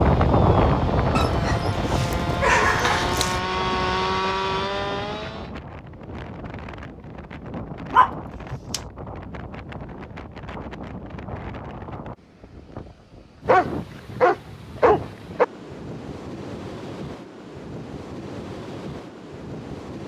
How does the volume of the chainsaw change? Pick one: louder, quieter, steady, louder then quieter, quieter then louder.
louder.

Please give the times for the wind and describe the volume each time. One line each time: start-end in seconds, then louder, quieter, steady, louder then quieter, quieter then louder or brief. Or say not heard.
0.0-20.0 quieter.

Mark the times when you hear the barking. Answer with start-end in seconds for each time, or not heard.
1.1-3.4, 7.9-8.8, 13.4-15.4.